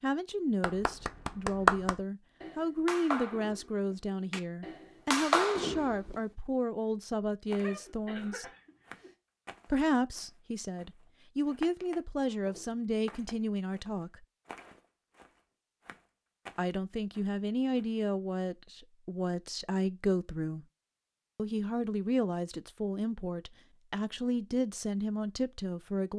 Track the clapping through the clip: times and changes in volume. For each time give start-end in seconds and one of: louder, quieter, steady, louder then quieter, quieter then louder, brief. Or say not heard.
0.6-6.2 quieter then louder.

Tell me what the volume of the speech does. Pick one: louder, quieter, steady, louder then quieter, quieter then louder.
steady.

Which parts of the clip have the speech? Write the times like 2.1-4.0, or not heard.
0.0-8.4, 9.7-14.2, 16.6-20.6, 21.4-26.1.